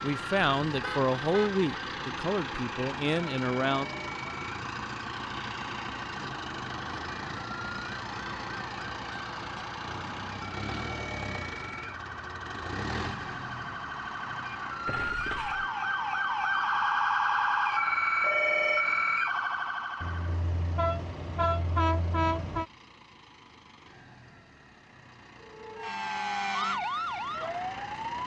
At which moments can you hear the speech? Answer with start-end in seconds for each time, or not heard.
0.0-3.9.